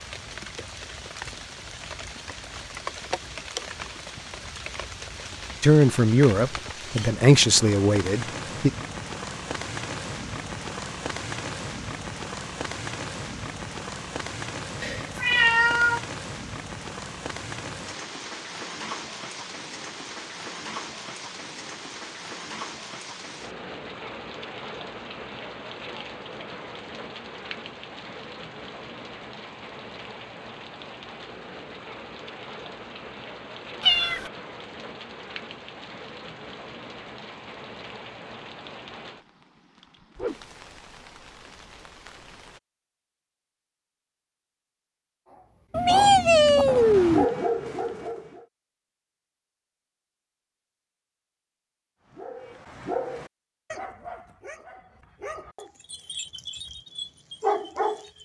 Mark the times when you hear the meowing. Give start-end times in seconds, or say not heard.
14.8-16.0, 33.8-34.3, 45.7-47.2.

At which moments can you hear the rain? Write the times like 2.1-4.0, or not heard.
0.0-42.6.